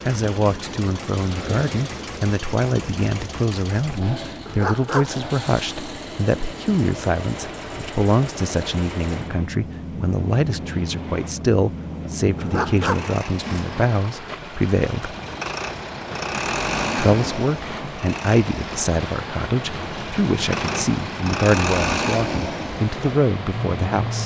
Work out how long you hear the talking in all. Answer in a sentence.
The talking can be heard for 22 seconds in total.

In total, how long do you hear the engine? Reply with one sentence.
The engine can be heard for 24 seconds in total.